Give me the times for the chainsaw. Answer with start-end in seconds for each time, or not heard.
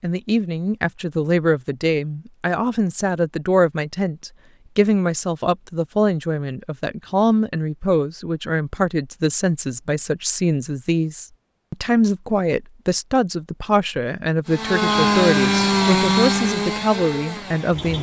14.4-17.9.